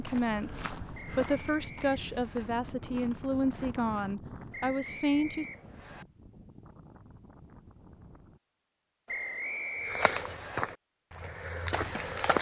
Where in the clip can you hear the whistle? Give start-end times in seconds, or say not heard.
0.9-2.5, 4.5-6.0, 9.1-10.6.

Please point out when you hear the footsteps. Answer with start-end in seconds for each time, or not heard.
0.0-3.9, 9.8-12.3.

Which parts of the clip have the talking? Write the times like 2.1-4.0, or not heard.
0.0-5.5.